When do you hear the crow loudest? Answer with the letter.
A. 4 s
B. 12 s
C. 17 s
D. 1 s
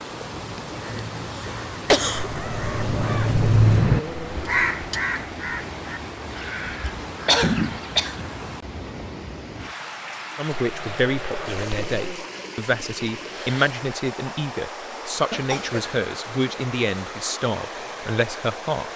A.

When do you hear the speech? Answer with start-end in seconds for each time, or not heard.
10.3-18.9.